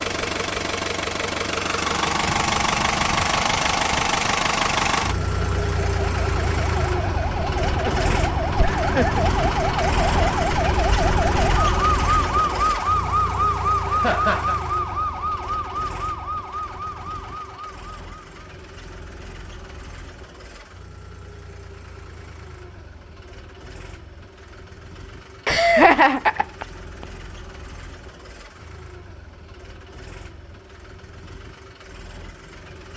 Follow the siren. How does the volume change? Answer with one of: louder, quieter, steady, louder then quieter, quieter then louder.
louder then quieter.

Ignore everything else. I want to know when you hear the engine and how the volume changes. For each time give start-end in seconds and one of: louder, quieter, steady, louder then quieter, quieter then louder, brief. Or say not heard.
0.0-32.9 quieter.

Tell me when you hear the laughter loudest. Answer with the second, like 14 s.
26 s.